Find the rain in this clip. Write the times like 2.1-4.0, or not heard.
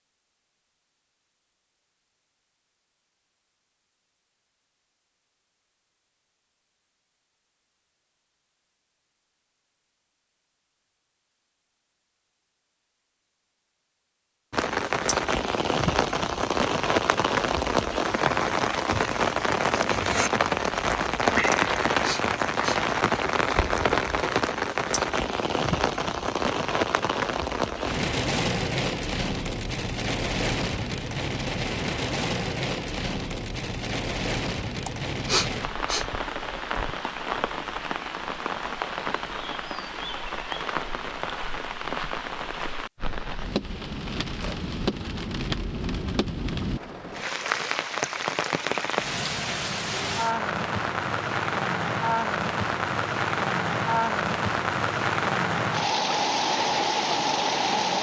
14.5-57.9.